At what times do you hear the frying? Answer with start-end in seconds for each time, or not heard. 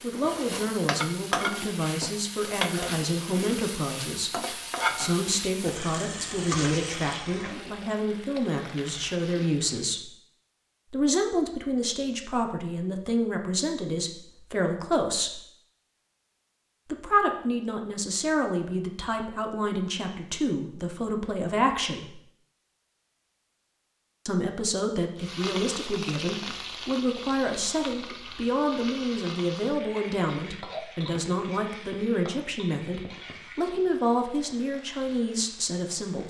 0.0-10.0, 25.1-36.2.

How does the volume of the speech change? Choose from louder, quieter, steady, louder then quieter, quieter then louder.
steady.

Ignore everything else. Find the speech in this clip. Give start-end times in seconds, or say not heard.
0.0-10.2, 10.9-15.4, 16.9-22.2, 24.2-36.2.